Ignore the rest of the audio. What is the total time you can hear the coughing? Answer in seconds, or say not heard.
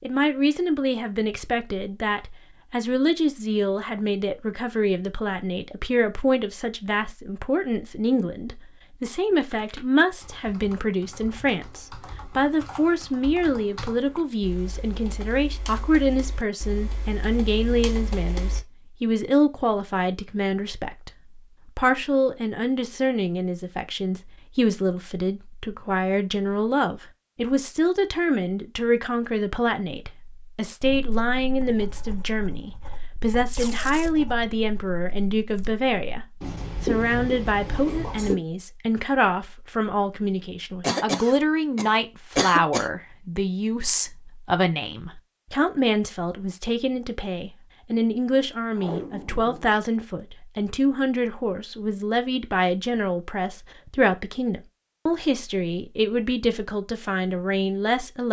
2 s.